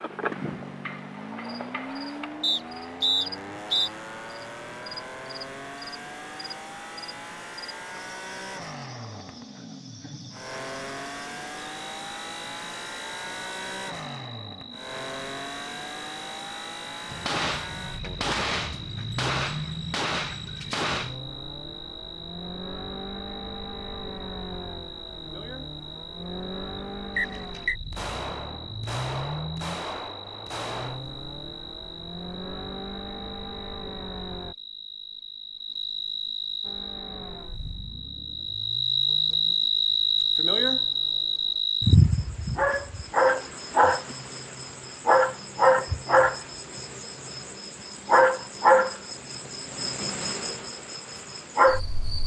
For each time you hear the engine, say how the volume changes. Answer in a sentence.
You can hear the engine from 0.0 to 34.5 s, at a steady volume; and from 36.6 to 41.6 s, getting quieter then louder.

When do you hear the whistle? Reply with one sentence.
You can hear the whistle from 2.4 to 3.9 s and from 27.1 to 27.8 s.